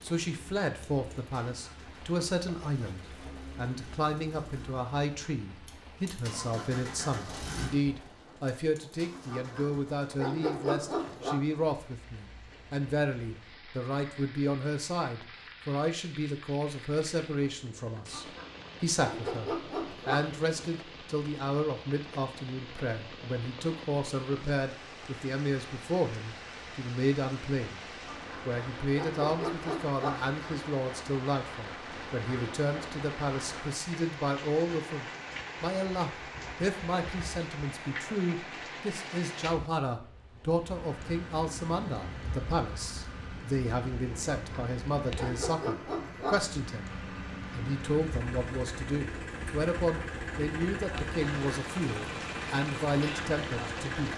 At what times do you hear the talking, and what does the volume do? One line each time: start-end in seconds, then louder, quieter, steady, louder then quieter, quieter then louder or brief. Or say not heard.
0.0-27.8 steady
28.4-54.1 steady.